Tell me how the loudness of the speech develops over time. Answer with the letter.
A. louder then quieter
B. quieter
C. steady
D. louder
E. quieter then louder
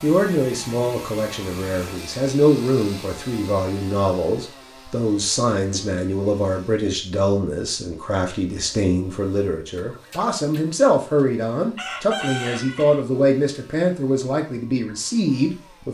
C.